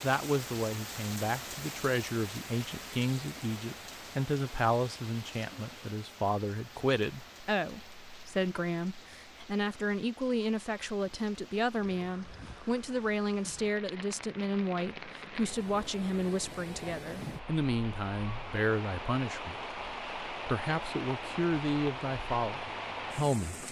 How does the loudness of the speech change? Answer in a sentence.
The volume of the speech stays about the same.